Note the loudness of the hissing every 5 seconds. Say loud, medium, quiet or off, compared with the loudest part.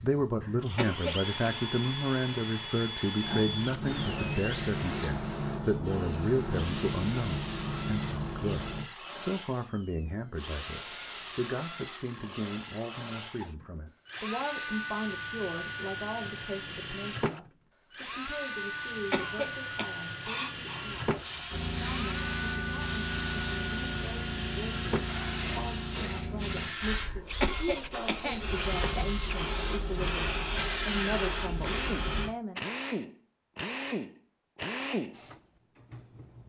loud, loud, off, off, loud, loud, loud, off.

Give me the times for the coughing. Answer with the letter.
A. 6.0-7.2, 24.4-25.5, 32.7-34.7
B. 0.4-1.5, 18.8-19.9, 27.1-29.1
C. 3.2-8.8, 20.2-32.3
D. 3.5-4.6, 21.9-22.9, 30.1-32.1
B.